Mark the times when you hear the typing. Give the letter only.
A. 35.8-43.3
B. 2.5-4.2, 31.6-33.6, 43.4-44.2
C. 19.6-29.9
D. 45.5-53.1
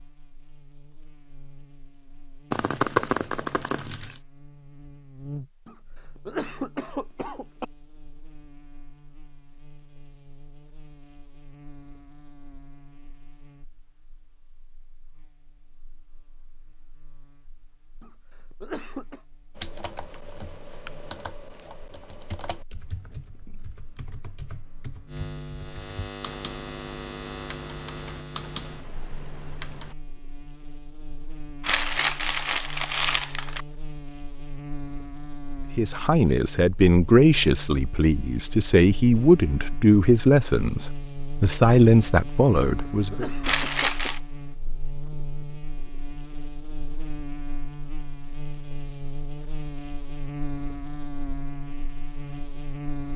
C.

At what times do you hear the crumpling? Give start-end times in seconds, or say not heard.
2.5-4.2, 31.6-33.6, 43.4-44.2.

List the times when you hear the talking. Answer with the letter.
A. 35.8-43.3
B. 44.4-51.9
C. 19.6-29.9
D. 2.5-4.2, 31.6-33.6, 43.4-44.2
A.